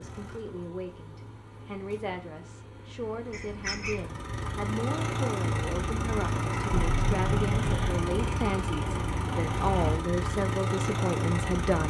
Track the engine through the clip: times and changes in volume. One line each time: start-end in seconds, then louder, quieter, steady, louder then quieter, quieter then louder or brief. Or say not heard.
0.0-11.8 louder.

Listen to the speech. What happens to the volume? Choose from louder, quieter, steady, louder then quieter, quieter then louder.
louder.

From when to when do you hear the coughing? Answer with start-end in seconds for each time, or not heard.
3.3-4.0, 6.7-8.1.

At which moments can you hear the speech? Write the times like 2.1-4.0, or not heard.
0.0-11.8.